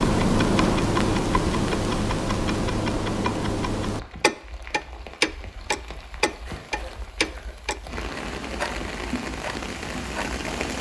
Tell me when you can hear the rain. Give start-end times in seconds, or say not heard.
3.8-10.7.